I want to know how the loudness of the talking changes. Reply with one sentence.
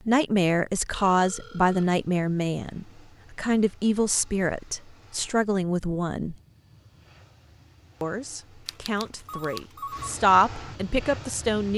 The loudness of the talking goes down, then up.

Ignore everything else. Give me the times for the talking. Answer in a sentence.
The talking can be heard from 0.1 to 6.3 s and from 8.0 to 11.7 s.